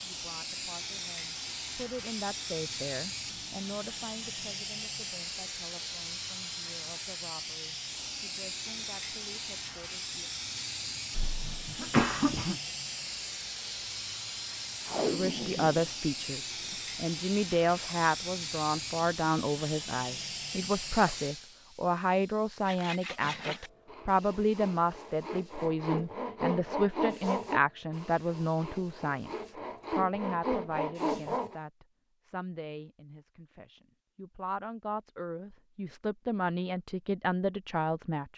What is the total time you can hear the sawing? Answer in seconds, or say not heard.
9 s.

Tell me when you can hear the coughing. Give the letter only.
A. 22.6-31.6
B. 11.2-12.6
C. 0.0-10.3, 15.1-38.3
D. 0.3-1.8
B.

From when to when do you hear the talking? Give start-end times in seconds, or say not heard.
0.0-10.3, 15.1-38.3.